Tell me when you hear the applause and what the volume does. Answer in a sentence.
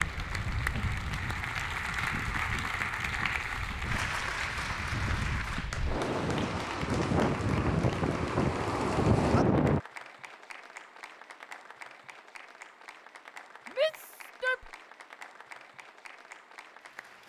The applause can be heard from 0.0 to 17.2 s, getting quieter.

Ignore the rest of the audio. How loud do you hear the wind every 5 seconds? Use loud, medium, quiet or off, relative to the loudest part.
quiet, loud, off, off.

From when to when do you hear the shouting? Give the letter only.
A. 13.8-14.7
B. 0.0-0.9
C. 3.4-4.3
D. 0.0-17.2
A.